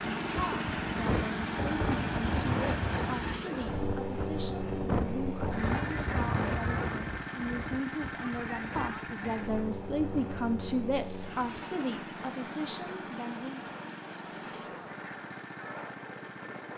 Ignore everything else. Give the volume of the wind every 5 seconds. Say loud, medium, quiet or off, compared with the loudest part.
loud, loud, medium, medium.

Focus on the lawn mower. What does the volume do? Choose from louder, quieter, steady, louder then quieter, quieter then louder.
quieter.